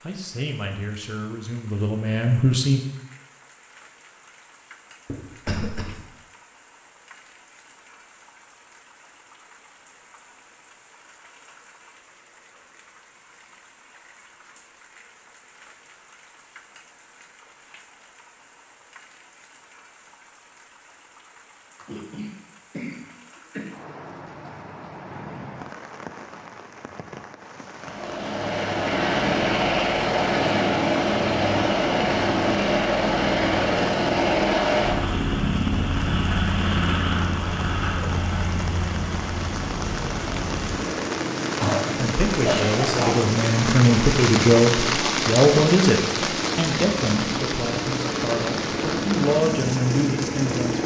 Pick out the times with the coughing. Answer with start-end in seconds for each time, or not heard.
5.0-6.0, 21.8-23.7, 41.6-43.1.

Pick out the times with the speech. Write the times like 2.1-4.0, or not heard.
0.0-2.8, 42.0-50.8.